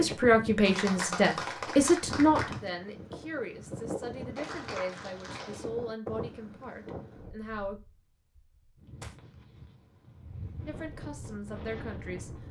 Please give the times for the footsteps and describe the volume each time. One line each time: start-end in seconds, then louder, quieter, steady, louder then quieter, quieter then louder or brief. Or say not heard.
not heard.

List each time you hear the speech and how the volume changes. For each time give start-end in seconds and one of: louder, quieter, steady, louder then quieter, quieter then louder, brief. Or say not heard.
0.0-7.8 quieter
10.7-12.3 brief.